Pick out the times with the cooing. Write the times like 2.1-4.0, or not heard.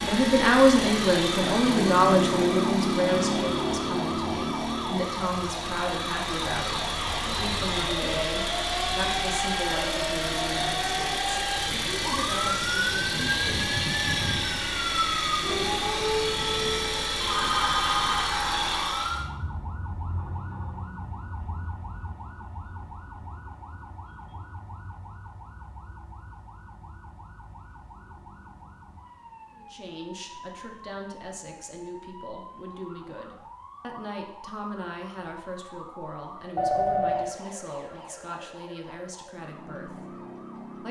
not heard.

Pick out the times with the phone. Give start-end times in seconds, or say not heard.
17.2-18.4, 36.5-37.4.